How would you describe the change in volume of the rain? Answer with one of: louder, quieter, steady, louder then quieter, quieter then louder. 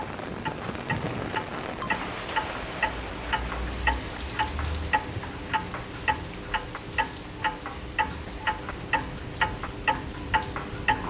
quieter.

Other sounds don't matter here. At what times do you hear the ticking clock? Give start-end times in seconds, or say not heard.
0.0-11.0.